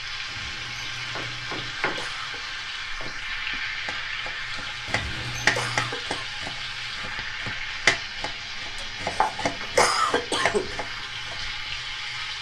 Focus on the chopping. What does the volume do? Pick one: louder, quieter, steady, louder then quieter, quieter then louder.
louder then quieter.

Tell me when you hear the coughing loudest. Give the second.
10 s.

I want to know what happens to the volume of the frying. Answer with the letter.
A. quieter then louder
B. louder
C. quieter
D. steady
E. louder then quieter
D.